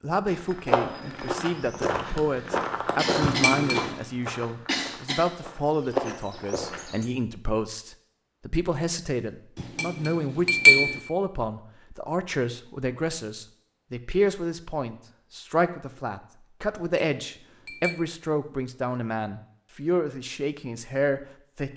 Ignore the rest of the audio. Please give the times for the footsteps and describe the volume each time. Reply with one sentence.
The footsteps can be heard from 0.2 to 7.0 s, getting quieter then louder.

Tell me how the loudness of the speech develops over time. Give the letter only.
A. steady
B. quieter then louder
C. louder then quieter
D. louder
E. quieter
A.